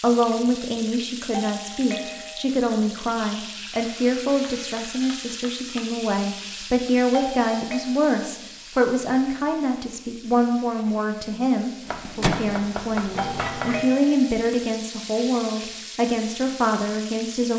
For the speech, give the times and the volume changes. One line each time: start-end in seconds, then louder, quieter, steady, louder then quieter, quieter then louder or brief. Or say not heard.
0.0-17.5 steady.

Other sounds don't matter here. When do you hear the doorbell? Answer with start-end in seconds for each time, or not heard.
1.3-2.5, 7.1-7.8, 13.2-14.2.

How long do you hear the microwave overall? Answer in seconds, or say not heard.
2 s.